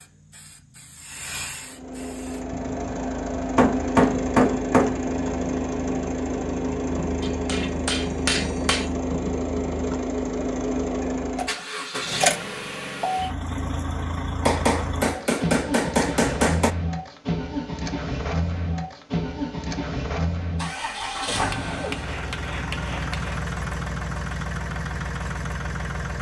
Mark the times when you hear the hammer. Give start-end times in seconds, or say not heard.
3.5-5.0, 7.2-8.9, 14.4-16.8, 21.5-23.4.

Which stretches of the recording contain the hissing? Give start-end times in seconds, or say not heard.
0.0-2.5.